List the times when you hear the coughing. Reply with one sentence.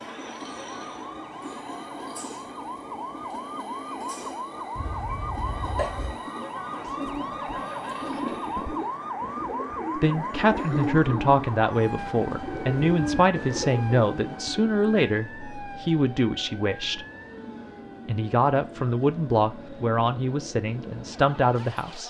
The coughing can be heard from 4.8 to 6.2 s.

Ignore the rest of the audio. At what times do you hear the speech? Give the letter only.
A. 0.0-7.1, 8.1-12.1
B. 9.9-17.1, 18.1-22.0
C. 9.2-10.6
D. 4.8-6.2
B.